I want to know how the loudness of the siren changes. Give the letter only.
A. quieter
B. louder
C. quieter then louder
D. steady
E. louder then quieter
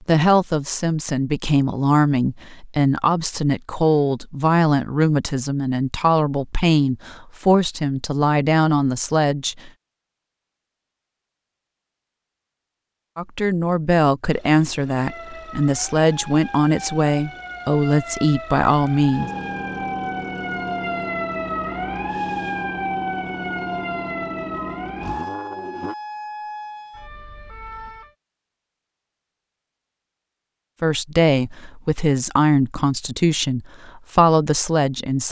E.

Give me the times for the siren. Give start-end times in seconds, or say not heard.
14.9-28.1.